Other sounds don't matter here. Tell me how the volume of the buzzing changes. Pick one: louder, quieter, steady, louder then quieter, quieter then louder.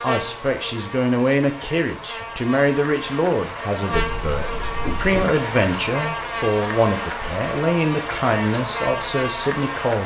louder.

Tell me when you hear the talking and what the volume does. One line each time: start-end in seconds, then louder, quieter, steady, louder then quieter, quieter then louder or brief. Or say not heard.
0.0-10.0 steady.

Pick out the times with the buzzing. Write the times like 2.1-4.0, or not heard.
0.0-10.0.